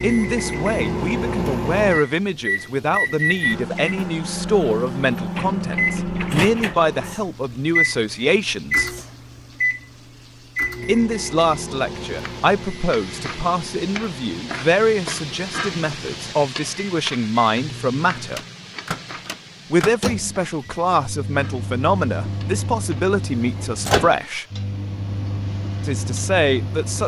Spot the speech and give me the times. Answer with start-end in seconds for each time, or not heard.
0.0-8.9, 10.8-18.4, 19.7-24.4, 25.9-27.0.